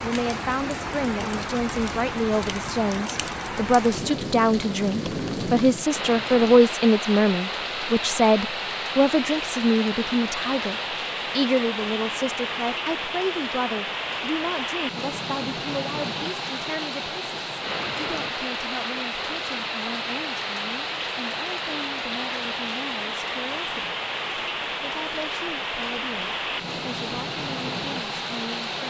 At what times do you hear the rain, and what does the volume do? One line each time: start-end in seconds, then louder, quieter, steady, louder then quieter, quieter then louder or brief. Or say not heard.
0.0-28.8 steady.